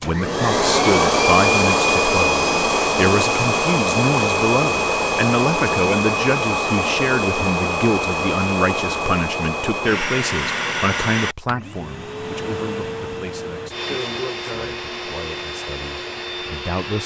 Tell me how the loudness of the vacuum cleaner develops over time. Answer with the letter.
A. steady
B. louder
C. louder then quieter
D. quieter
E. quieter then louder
D.